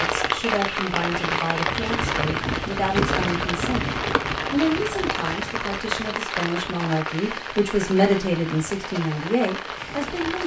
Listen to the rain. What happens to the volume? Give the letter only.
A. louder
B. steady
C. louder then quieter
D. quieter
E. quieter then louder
D.